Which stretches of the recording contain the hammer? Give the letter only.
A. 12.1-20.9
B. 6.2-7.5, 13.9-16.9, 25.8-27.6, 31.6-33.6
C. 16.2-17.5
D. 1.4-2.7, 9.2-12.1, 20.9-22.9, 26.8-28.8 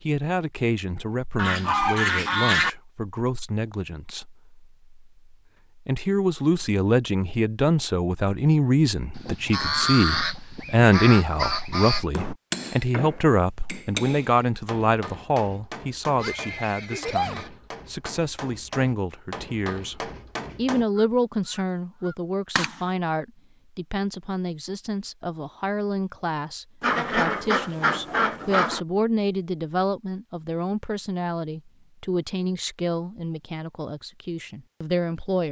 A.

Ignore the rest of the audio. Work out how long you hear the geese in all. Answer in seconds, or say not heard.
8 s.